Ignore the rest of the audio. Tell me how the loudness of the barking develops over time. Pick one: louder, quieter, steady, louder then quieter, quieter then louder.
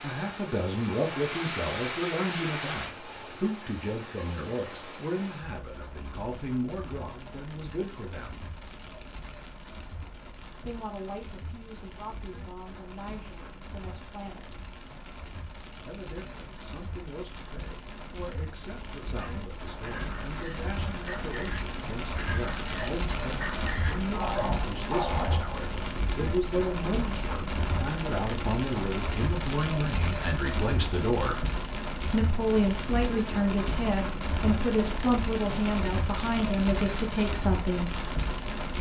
louder.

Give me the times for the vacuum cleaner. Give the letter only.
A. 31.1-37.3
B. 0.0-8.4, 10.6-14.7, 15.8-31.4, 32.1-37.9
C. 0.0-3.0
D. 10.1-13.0
C.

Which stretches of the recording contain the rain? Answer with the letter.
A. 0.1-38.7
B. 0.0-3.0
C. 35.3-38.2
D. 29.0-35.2
A.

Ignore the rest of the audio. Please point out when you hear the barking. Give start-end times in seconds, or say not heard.
19.1-25.4.